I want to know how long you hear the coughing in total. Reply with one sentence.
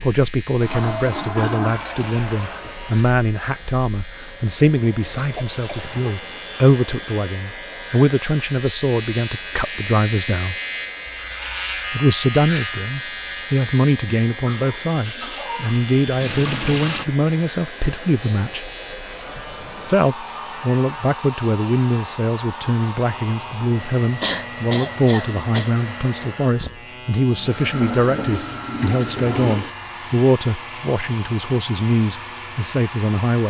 The coughing can be heard for 4 seconds in total.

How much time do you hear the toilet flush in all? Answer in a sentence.
The toilet flush can be heard for 5 seconds in total.